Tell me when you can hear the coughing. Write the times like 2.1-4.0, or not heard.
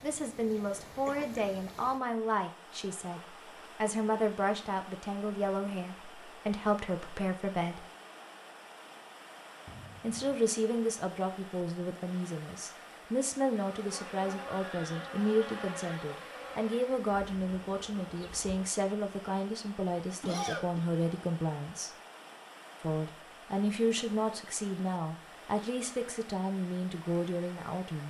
1.1-1.8, 9.7-10.4, 20.2-20.9.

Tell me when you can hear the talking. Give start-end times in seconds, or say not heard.
0.0-7.8, 10.0-21.9, 22.8-28.0.